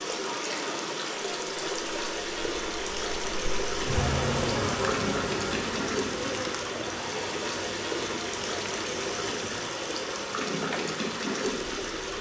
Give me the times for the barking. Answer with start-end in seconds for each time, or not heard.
not heard.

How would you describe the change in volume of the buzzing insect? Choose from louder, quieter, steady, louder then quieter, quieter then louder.
quieter.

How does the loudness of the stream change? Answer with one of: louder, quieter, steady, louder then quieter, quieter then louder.
steady.